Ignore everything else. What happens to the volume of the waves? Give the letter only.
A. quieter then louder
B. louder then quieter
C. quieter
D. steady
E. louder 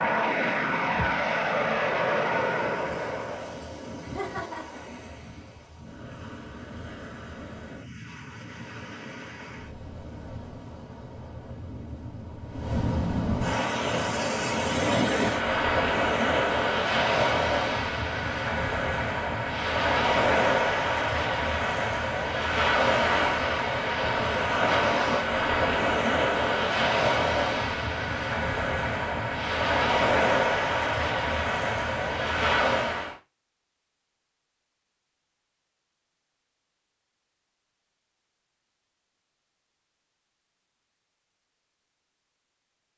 E.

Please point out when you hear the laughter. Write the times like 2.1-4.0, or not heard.
4.0-4.8.